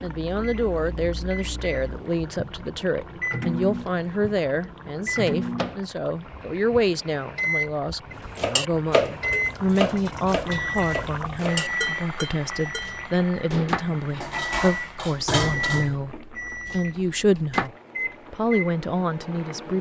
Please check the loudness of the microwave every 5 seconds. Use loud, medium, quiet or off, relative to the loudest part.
medium, loud, loud, loud.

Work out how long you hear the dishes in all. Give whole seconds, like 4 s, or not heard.
8 s.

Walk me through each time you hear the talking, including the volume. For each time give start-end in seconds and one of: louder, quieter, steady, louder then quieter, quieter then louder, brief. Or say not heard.
0.0-17.7 steady
18.3-19.7 brief.